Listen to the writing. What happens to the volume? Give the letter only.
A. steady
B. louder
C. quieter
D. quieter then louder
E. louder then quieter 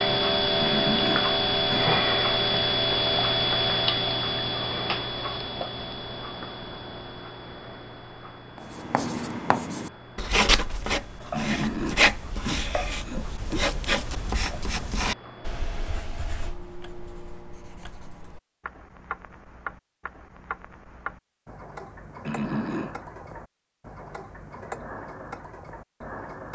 C.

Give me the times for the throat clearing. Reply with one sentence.
The throat clearing can be heard from 0.6 to 1.9 s, from 11.3 to 13.7 s and from 22.2 to 22.9 s.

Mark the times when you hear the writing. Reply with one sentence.
The writing can be heard from 8.6 to 18.3 s.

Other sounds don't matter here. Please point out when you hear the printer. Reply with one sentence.
You can't hear the printer here.